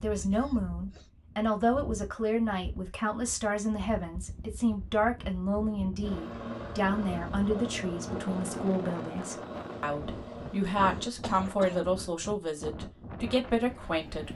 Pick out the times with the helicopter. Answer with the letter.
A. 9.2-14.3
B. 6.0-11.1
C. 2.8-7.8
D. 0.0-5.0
B.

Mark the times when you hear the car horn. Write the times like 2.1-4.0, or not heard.
not heard.